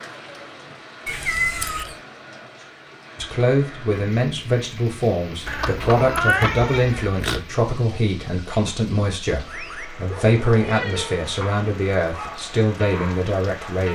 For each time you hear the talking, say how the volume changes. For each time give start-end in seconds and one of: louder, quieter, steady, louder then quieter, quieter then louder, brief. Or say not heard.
3.1-13.8 steady.